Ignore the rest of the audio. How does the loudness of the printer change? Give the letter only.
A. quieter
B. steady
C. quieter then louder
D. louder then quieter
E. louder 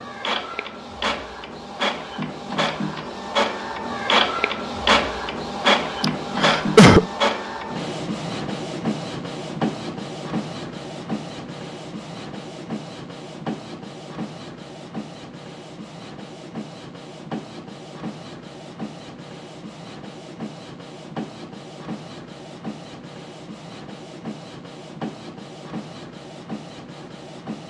A.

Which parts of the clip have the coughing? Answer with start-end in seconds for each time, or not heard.
6.0-7.0.